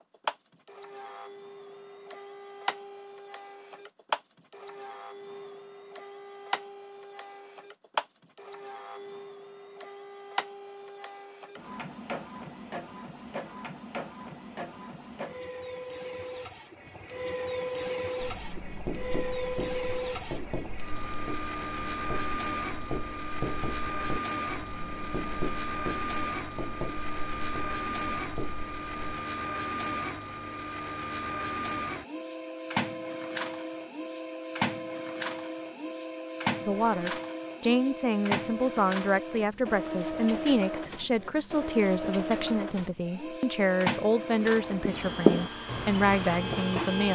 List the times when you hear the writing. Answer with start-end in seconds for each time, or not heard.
17.8-29.2, 44.4-47.0.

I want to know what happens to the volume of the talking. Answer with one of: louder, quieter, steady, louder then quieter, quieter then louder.
steady.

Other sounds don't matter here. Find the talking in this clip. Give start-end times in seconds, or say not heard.
36.6-47.0.